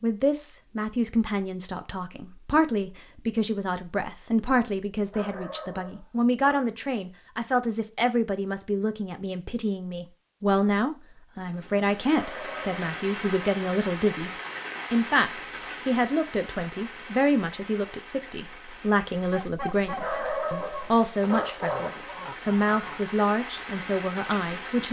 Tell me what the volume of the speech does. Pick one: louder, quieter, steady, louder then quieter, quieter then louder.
steady.